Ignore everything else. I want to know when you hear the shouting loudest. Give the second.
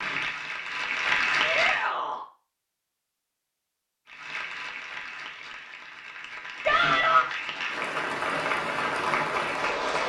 7 s.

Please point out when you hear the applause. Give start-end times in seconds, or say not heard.
0.0-1.9, 4.0-10.0.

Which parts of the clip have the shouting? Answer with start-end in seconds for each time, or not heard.
1.4-2.2, 6.6-7.2.